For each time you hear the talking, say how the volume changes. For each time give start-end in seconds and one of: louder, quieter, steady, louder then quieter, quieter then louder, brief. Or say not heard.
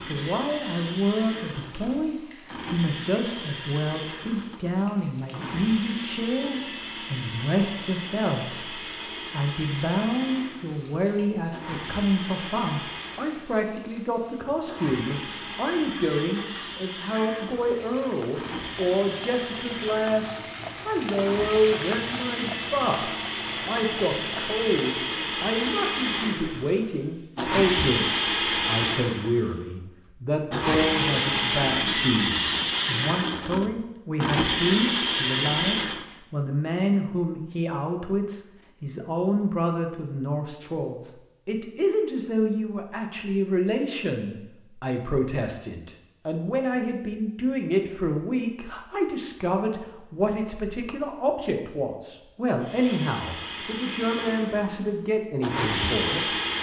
0.1-56.5 steady.